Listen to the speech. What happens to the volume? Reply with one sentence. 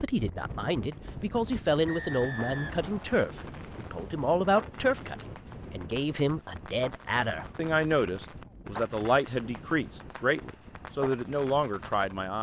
The loudness of the speech stays about the same.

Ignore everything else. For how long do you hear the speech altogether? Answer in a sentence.
The speech can be heard for 12 seconds in total.